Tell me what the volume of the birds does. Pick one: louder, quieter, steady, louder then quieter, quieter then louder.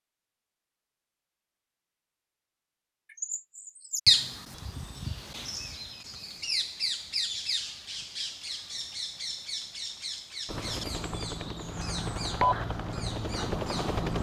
quieter.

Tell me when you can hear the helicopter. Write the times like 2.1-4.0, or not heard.
10.4-14.1.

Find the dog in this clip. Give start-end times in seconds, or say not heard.
not heard.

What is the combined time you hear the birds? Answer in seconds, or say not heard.
11 s.